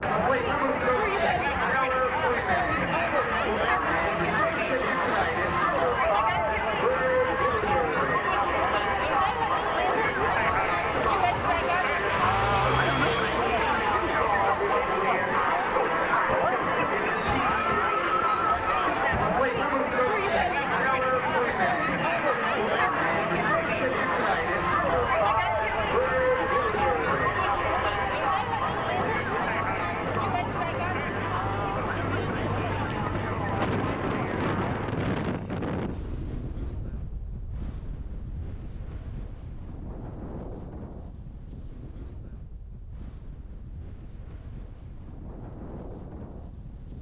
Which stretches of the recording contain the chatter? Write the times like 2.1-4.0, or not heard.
0.0-34.9.